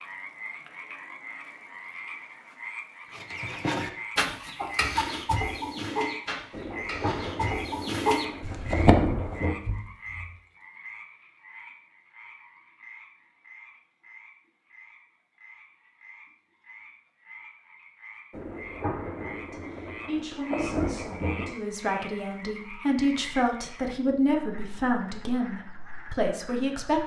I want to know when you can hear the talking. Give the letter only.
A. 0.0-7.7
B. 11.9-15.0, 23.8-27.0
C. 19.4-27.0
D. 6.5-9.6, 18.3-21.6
C.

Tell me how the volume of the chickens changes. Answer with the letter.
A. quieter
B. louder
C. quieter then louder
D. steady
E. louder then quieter
C.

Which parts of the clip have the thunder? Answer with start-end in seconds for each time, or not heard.
6.5-9.6, 18.3-21.6.